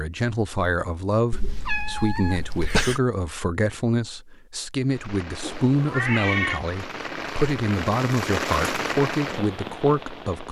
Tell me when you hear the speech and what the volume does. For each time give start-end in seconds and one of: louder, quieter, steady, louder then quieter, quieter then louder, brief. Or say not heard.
0.0-10.4 steady.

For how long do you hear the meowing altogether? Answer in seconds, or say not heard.
3 s.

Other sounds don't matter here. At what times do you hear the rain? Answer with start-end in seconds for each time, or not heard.
4.8-10.4.